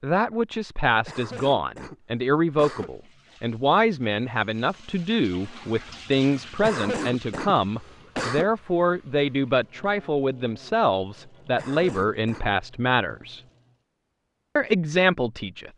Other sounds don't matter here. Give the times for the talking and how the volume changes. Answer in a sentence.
The talking can be heard from 0.0 to 13.4 s, at a steady volume; and briefly from 14.6 to 15.7 s.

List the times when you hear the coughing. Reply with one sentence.
You can hear the coughing from 1.1 to 2.9 s, from 6.6 to 8.5 s and from 11.6 to 12.5 s.